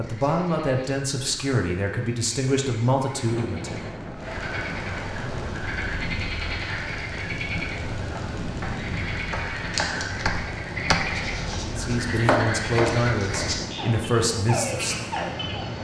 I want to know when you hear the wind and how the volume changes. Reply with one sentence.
You can hear the wind from 3.2 to 15.7 s, at a steady volume.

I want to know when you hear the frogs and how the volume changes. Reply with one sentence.
You can hear the frogs from 0.0 to 15.7 s, getting louder.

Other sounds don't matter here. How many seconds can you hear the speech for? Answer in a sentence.
You can hear the speech for 8 seconds altogether.